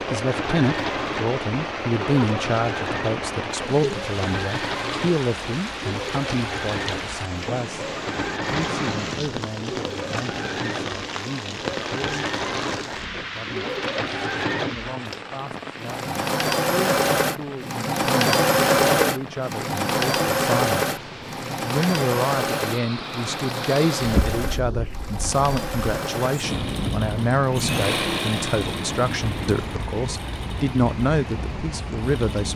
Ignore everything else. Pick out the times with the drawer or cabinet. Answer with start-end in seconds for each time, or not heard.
24.0-24.7.